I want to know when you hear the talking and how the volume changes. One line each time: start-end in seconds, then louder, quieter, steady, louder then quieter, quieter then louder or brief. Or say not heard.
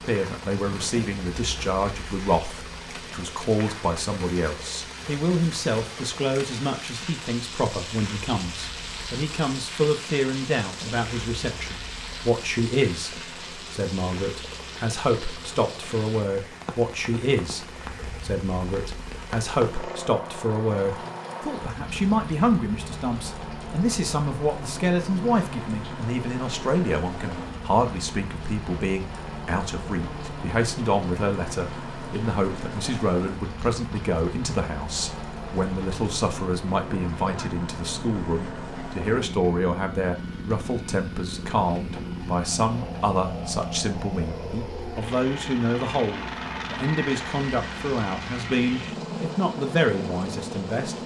0.1-51.0 steady.